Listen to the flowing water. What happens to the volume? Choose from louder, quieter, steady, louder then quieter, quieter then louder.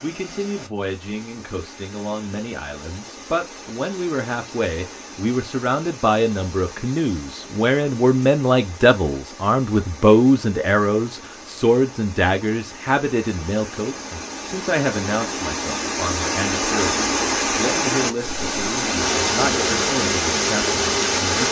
louder.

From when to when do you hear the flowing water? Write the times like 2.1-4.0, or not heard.
0.0-21.4.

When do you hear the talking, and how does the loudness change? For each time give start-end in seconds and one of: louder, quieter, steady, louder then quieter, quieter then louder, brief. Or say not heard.
0.0-21.4 louder then quieter.